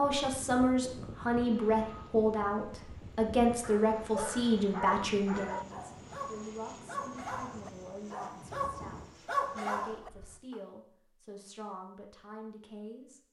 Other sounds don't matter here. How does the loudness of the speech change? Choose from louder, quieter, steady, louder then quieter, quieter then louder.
quieter.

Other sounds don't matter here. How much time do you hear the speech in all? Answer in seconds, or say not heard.
13 s.